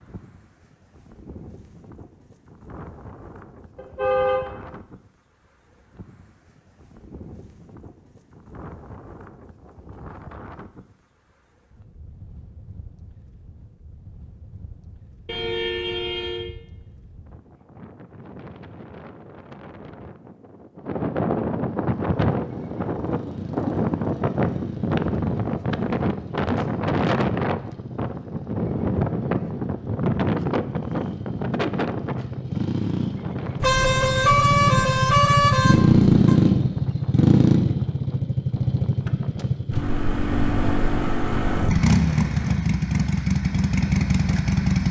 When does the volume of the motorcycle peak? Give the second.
36 s.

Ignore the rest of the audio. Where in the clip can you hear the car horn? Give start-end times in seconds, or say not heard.
3.8-4.5, 15.2-16.4, 33.6-36.4.